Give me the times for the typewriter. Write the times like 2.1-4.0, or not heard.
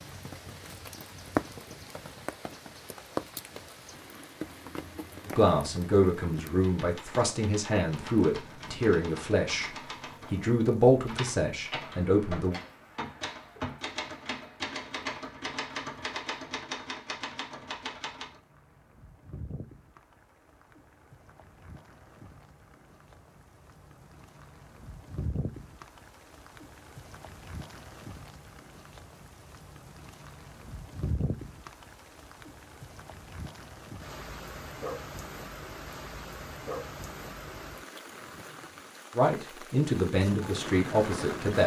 6.5-18.4.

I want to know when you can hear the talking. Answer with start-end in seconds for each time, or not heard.
5.2-12.6, 39.1-41.6.